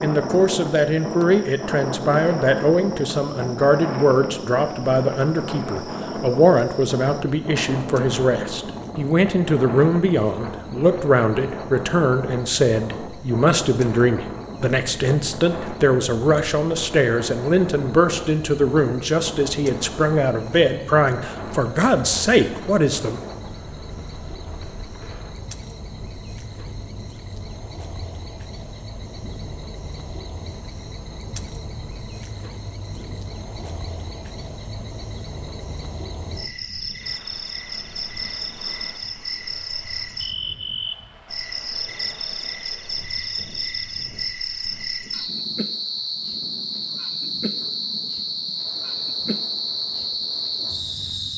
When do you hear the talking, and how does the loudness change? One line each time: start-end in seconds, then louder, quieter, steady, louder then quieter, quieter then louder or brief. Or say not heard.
0.0-23.2 steady.